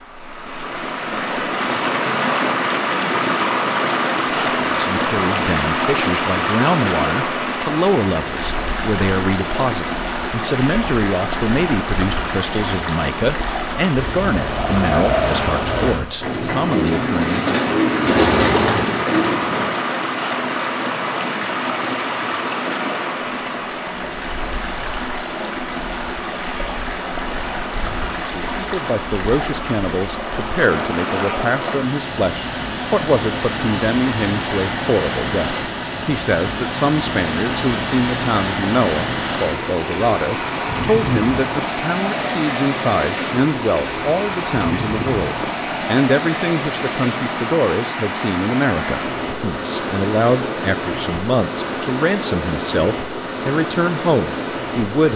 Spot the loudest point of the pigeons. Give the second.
18 s.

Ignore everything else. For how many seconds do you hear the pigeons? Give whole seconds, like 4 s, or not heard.
6 s.